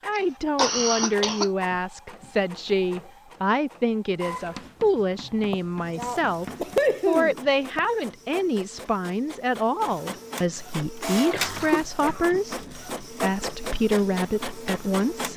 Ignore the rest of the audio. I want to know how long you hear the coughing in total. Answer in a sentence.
You can hear the coughing for 5 seconds altogether.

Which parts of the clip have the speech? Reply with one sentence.
You can hear the speech from 0.1 to 15.3 s.